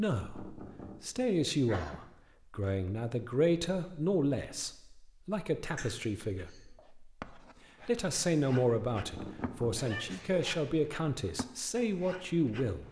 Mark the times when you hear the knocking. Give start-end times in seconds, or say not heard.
0.1-1.1, 8.9-9.9.